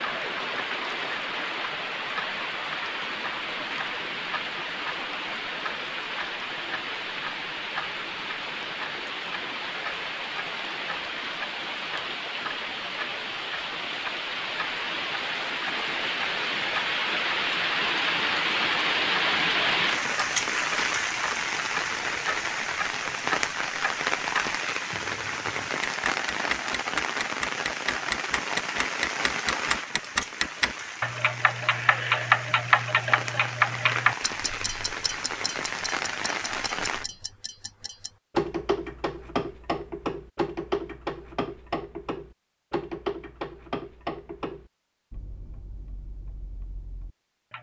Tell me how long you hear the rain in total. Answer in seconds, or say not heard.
37 s.